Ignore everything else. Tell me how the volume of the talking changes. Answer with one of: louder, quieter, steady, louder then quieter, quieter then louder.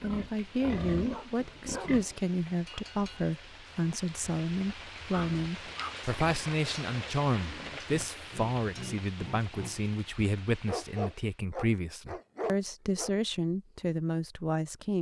steady.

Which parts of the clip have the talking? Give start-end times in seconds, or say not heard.
0.0-14.9.